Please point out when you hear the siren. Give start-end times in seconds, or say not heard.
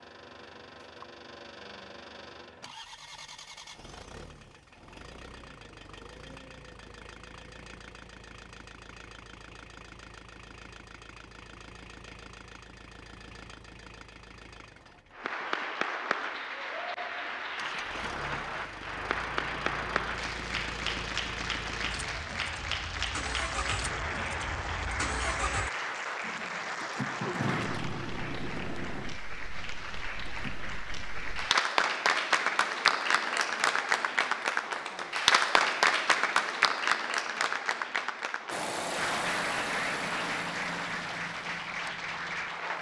not heard.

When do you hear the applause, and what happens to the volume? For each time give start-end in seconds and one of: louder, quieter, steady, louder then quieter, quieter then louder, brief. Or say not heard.
15.1-42.7 louder then quieter.